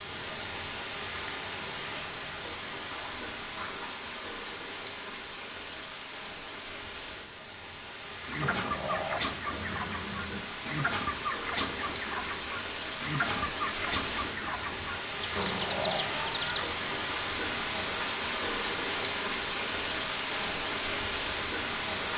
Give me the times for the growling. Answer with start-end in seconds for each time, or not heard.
2.9-4.0, 8.4-10.4, 15.3-16.1.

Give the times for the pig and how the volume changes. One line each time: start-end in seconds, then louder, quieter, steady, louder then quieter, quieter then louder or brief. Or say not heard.
not heard.